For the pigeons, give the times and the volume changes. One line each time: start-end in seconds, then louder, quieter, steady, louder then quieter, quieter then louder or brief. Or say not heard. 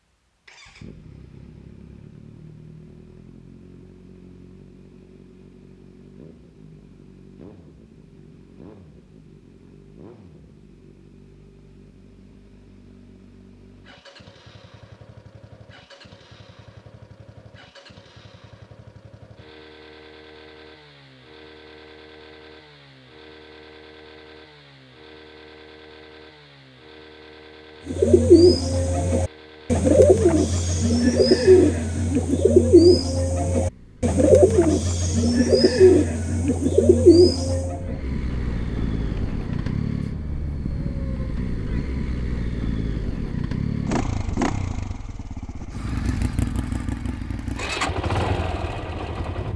27.9-39.8 quieter.